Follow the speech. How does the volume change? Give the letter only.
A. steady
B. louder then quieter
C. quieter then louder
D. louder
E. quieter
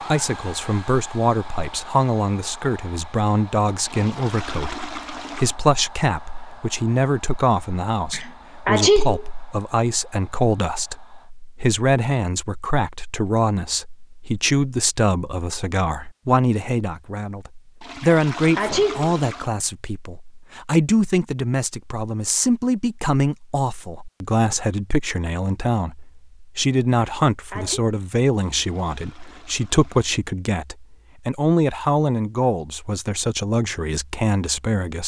A.